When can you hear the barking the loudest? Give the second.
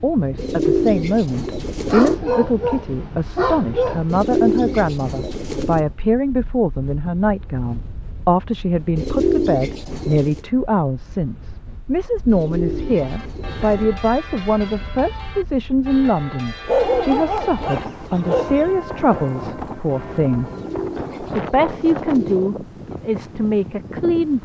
17 s.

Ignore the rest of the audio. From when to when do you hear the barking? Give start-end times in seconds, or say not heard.
1.9-4.2, 16.6-18.8.